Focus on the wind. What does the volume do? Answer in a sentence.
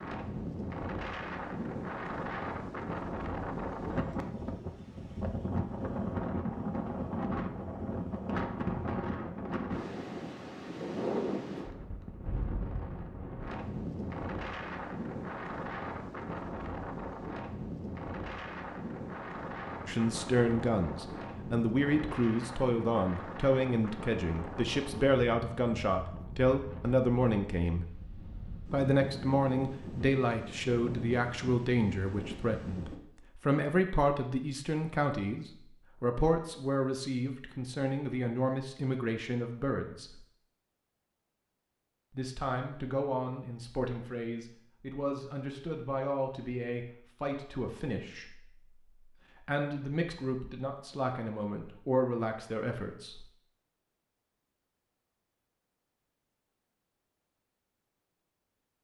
The loudness of the wind goes down.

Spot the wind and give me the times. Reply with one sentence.
The wind can be heard from 0.0 to 33.0 s.